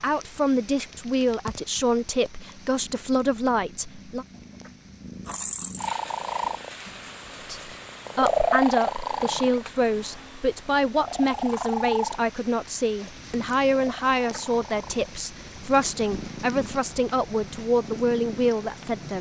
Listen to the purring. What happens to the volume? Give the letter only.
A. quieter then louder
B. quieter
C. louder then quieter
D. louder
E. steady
C.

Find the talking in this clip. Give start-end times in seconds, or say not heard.
0.0-4.2, 7.5-19.1.